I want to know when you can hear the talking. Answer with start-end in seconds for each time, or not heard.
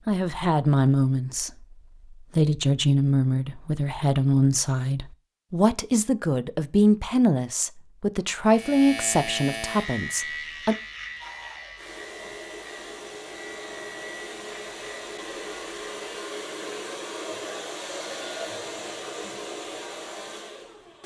0.1-10.8.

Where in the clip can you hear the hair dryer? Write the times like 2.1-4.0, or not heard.
11.2-21.0.